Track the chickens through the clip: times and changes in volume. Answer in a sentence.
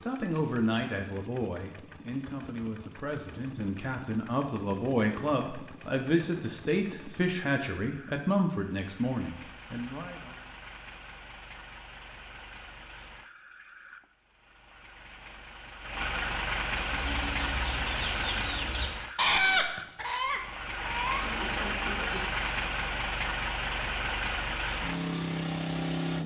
You can hear the chickens from 16.9 to 22.4 s, getting louder then quieter.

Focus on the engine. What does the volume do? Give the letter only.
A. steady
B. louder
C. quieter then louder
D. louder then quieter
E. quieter
B.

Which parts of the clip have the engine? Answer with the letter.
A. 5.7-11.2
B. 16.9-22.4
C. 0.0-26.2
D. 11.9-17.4
C.